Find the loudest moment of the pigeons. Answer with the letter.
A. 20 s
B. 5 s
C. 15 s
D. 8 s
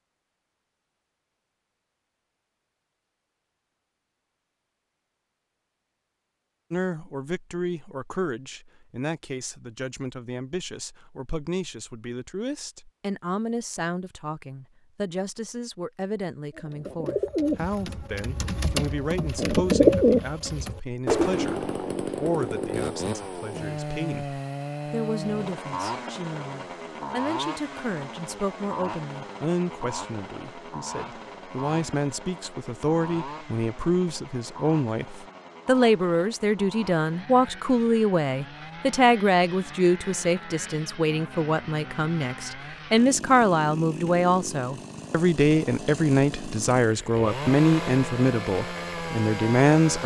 A.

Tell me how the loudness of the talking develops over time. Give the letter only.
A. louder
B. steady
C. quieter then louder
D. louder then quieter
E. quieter
A.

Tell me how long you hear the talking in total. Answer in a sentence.
The talking can be heard for 43 seconds in total.